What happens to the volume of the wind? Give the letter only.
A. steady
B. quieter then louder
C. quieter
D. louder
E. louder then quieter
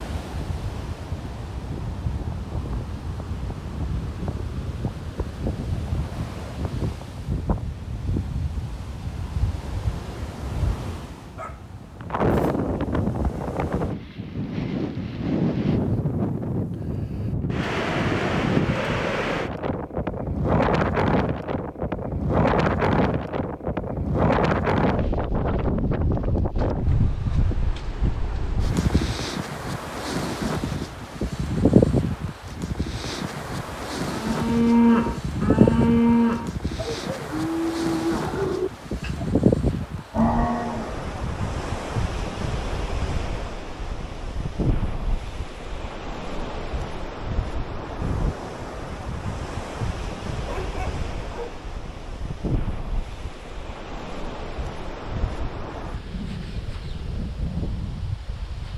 E.